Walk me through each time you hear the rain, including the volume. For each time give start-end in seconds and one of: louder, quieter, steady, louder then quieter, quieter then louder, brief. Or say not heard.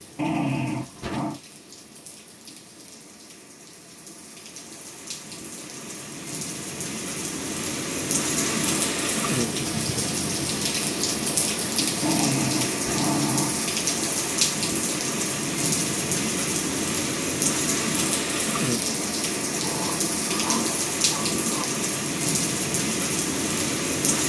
0.0-24.2 louder.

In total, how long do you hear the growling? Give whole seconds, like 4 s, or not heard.
5 s.